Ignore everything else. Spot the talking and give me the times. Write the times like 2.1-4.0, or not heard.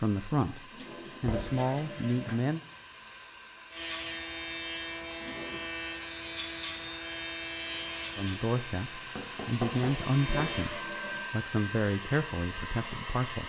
0.0-2.6, 8.2-13.4.